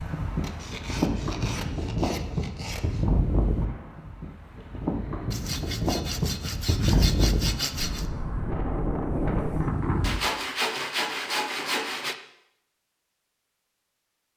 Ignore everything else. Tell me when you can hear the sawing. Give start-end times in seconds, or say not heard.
0.4-3.0, 5.3-8.1, 10.0-12.2.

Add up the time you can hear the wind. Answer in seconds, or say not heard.
10 s.